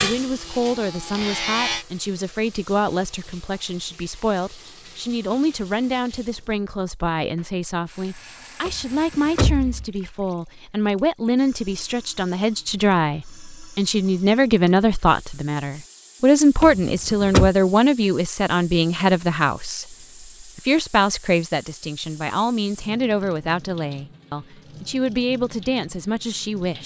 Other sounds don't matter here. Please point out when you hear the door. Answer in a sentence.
The door can be heard from 8.7 to 9.8 s and from 16.6 to 17.5 s.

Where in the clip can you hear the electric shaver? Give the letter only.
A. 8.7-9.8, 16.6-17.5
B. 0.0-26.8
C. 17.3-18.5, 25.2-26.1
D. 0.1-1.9
D.